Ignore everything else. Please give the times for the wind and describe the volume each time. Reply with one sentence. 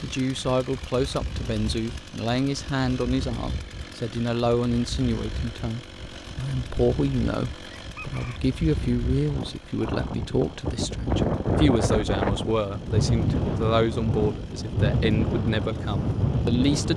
The wind can be heard from 0.0 to 16.9 s, getting louder.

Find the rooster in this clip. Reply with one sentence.
The rooster can be heard from 7.8 to 8.4 s.